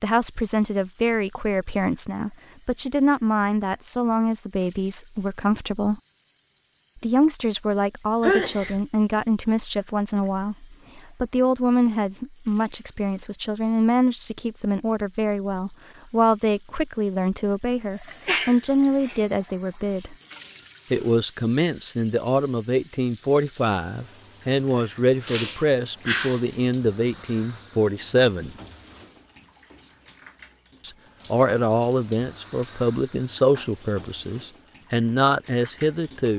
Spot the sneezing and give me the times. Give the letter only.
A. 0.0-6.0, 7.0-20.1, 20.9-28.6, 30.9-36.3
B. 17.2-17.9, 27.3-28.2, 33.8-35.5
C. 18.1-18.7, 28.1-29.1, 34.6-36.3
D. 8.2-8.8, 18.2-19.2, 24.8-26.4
D.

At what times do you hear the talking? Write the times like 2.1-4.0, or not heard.
0.0-6.0, 7.0-20.1, 20.9-28.6, 30.9-36.3.